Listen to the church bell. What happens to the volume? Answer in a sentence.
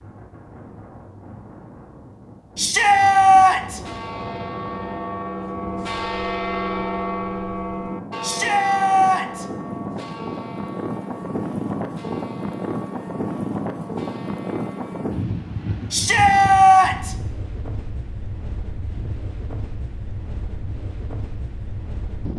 The loudness of the church bell goes down.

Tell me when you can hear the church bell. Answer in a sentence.
The church bell can be heard from 3.8 to 15.1 s.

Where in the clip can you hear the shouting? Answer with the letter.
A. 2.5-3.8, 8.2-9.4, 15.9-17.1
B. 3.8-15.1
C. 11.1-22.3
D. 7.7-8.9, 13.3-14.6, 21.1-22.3
A.